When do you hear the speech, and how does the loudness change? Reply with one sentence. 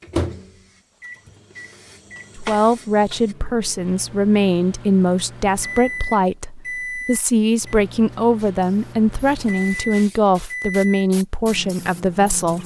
You can hear the speech from 2.4 to 12.6 s, at a steady volume.